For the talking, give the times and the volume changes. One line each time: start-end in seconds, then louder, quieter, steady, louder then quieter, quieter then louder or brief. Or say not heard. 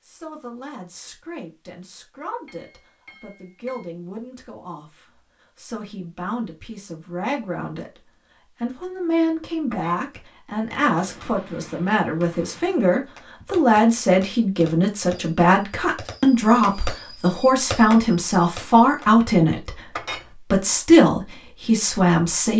0.0-22.5 louder.